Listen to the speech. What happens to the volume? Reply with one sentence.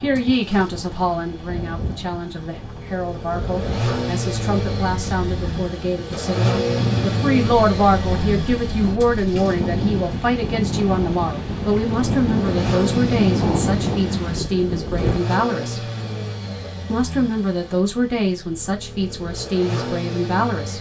The volume of the speech stays about the same.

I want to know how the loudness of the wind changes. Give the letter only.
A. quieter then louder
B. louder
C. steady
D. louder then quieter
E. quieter
B.